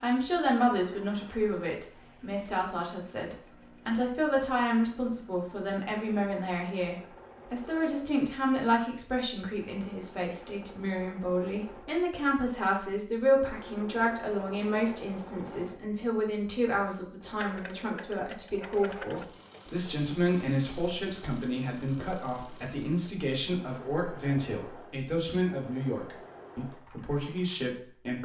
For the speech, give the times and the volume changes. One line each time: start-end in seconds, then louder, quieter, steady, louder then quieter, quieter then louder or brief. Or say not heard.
0.0-28.1 steady.